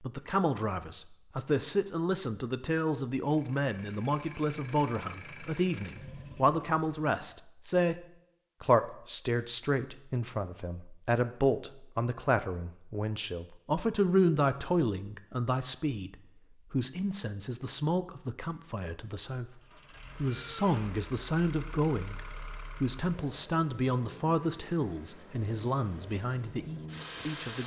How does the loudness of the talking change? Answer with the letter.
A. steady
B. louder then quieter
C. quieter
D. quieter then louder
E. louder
A.